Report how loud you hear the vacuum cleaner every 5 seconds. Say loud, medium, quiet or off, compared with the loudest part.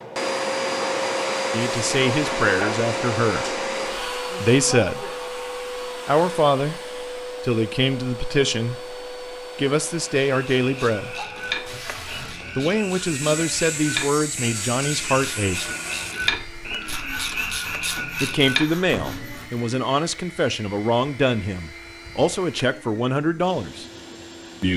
loud, medium, quiet, quiet, quiet.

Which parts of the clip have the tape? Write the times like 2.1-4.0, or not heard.
11.7-12.7.